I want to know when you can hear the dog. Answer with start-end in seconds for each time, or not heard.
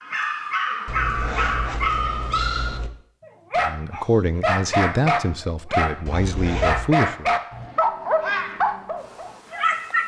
0.0-10.0.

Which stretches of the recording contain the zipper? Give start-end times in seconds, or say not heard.
0.8-2.9, 6.0-6.9.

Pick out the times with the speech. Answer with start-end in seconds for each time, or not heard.
3.6-7.3.